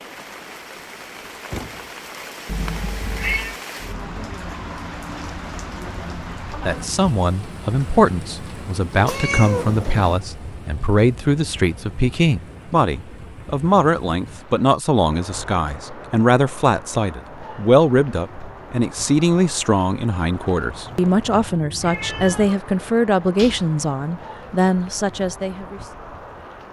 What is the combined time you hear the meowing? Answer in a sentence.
The meowing can be heard for 4 seconds in total.